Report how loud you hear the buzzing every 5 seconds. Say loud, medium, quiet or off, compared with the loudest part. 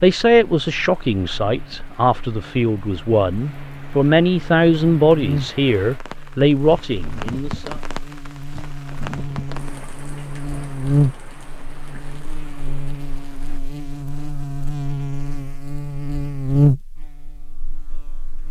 quiet, medium, loud, loud.